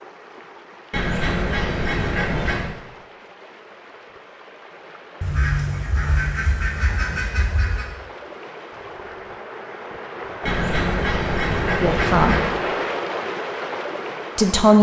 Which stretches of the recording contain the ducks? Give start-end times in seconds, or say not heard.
0.9-2.8, 5.2-8.0, 10.4-12.6.